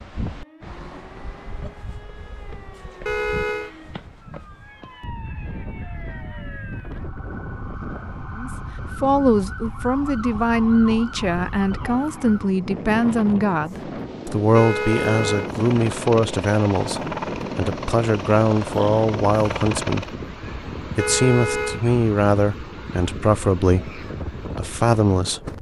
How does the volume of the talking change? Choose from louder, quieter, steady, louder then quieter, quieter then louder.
steady.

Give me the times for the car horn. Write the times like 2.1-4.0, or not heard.
3.0-3.8, 14.6-15.5, 20.9-21.8.